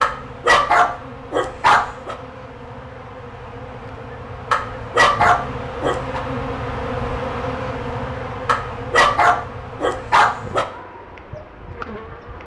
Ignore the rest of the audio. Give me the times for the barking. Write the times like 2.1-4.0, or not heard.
0.0-2.1, 4.5-6.2, 8.4-10.7.